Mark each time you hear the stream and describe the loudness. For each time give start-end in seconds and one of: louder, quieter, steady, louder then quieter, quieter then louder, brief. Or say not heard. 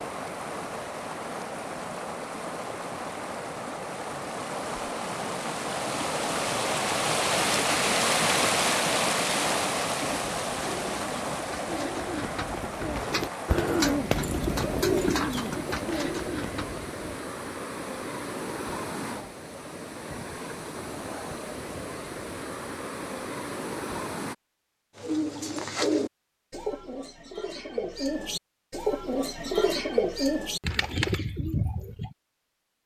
0.0-24.4 louder then quieter.